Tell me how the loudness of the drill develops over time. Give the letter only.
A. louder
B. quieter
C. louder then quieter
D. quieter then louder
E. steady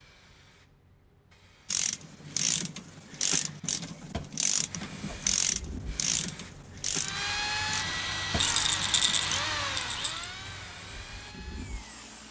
B.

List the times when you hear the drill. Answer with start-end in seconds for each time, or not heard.
7.0-12.2.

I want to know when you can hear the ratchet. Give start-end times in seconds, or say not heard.
1.6-9.4.